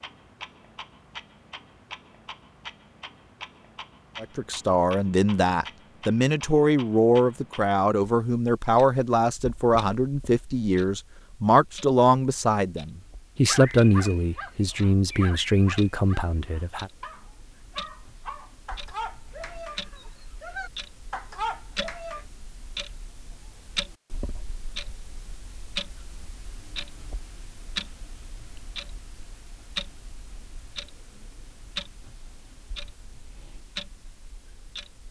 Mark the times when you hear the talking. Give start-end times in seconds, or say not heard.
4.2-16.9.